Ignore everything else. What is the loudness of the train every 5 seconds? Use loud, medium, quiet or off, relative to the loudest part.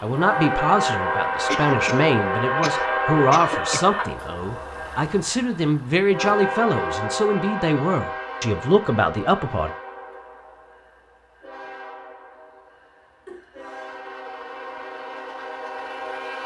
loud, medium, quiet, medium.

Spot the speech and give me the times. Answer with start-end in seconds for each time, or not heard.
0.0-9.7.